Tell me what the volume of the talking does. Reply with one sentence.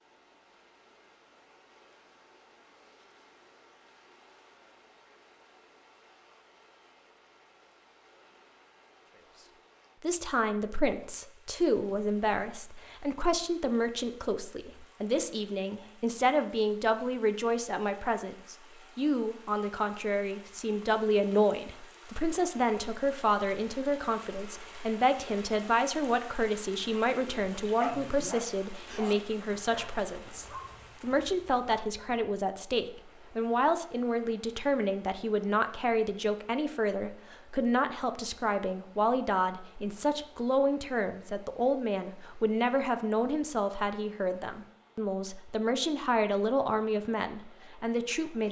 The loudness of the talking stays about the same.